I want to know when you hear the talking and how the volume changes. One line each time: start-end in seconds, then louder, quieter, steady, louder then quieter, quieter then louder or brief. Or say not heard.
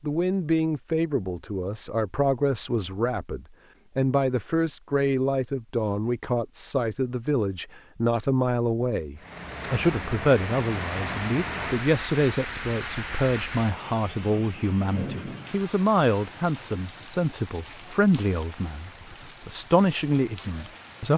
0.0-21.1 steady.